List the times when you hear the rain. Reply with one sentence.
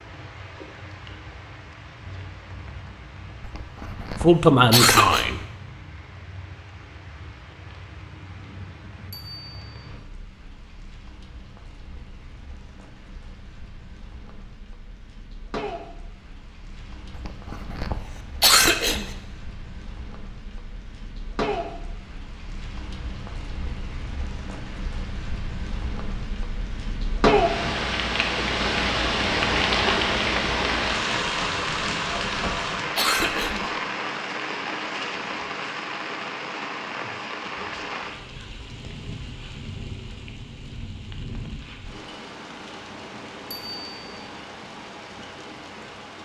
The rain can be heard from 0.0 to 46.2 s.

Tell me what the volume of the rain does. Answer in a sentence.
The volume of the rain goes up, then down.